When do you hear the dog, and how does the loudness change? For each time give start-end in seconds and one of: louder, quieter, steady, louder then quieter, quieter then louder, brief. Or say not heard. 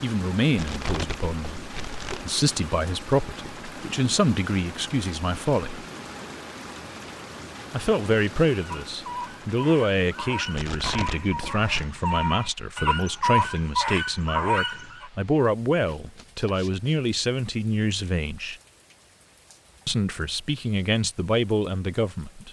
8.6-15.1 louder.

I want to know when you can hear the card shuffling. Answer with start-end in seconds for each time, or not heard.
0.6-2.3, 10.6-11.8, 15.8-16.9.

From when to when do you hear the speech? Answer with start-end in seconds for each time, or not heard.
0.0-5.8, 7.7-18.6, 19.9-22.4.